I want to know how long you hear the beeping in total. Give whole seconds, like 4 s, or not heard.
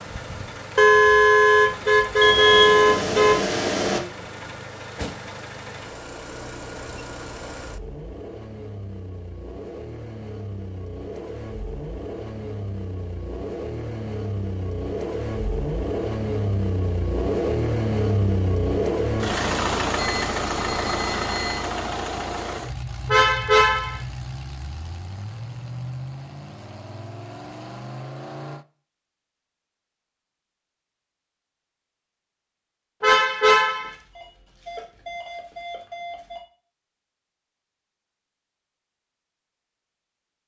6 s.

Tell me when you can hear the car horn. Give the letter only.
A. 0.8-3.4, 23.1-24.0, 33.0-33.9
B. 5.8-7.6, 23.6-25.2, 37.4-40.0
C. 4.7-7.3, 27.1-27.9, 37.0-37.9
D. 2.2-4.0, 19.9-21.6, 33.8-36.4
A.